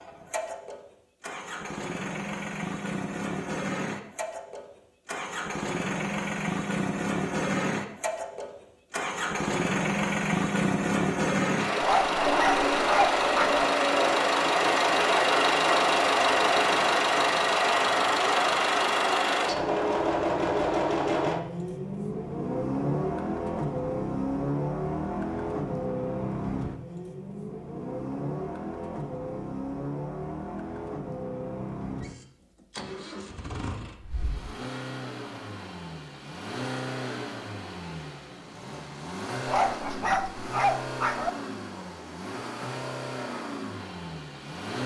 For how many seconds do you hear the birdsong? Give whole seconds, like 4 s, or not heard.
not heard.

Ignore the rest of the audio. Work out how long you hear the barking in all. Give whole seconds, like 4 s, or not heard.
4 s.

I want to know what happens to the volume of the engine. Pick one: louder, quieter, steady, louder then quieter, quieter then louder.
louder then quieter.